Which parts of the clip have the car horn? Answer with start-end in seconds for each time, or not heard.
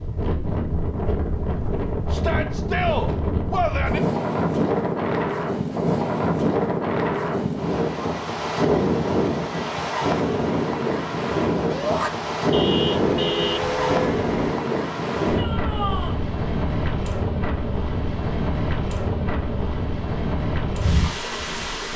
12.5-14.5.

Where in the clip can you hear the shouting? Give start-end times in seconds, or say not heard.
2.1-4.0, 11.7-12.1, 15.3-16.2.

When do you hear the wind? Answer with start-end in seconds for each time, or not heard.
0.0-21.9.